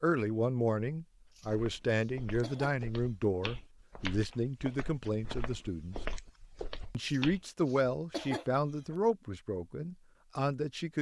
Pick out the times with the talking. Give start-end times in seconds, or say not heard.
0.0-6.0, 6.9-10.9.